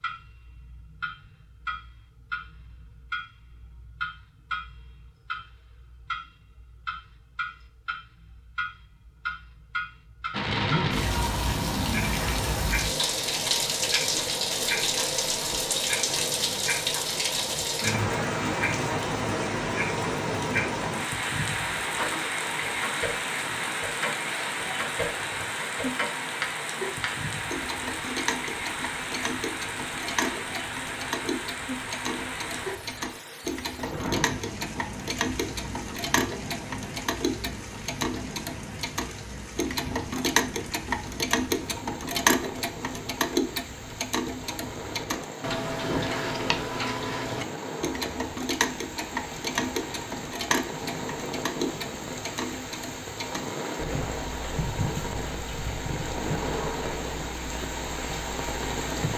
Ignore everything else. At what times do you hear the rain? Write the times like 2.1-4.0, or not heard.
10.3-59.1.